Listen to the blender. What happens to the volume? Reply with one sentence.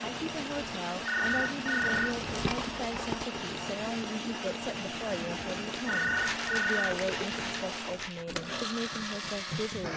The loudness of the blender stays about the same.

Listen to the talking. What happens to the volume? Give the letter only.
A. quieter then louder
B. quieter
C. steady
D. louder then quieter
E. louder
C.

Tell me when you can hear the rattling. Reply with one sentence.
The rattling can be heard from 1.8 to 3.2 s and from 6.2 to 8.2 s.